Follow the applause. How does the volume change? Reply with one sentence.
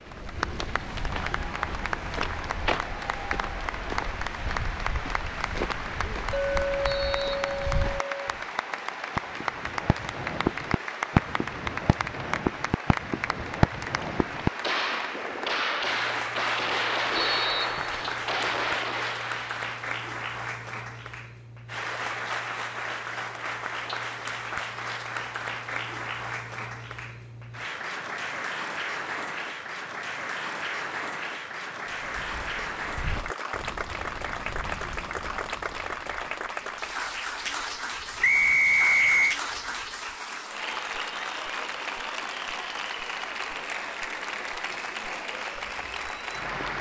The loudness of the applause stays about the same.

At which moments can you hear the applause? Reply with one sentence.
You can hear the applause from 0.0 to 46.7 s.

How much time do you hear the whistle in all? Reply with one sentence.
You can hear the whistle for 3 seconds altogether.